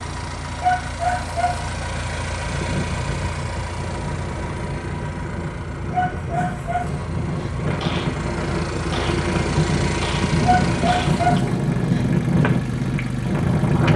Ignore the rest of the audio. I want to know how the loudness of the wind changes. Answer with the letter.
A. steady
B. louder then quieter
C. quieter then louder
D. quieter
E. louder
E.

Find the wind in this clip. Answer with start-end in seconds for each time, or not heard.
2.4-13.9.